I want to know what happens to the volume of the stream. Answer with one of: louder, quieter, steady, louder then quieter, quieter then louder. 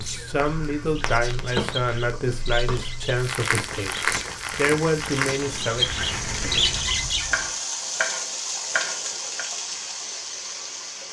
louder.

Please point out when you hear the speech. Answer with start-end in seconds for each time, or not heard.
0.0-6.0.